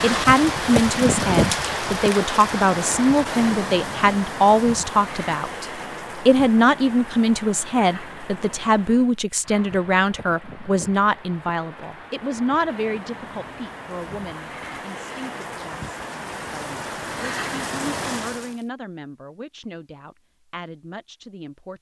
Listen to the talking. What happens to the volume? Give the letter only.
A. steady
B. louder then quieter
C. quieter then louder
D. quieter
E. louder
D.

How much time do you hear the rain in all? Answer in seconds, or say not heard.
19 s.